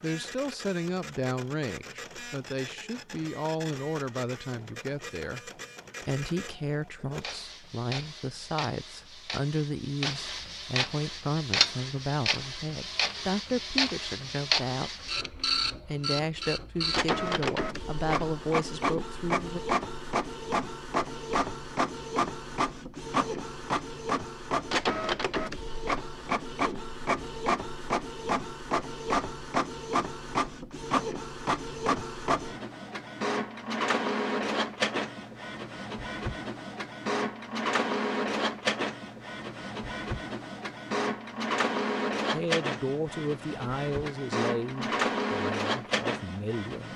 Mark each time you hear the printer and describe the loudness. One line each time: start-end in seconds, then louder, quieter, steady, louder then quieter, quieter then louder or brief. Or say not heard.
0.0-46.9 louder.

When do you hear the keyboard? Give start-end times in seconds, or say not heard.
not heard.